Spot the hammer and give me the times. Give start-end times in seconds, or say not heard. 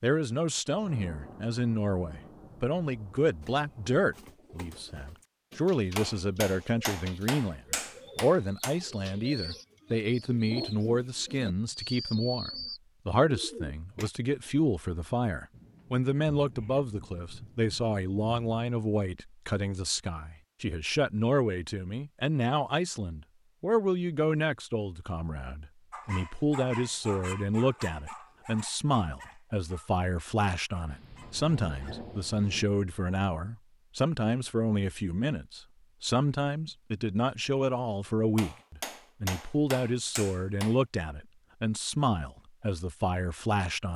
6.0-8.8, 38.4-40.8.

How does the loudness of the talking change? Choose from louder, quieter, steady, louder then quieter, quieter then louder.
steady.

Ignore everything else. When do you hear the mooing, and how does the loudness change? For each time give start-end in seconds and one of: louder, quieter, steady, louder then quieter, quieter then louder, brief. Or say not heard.
not heard.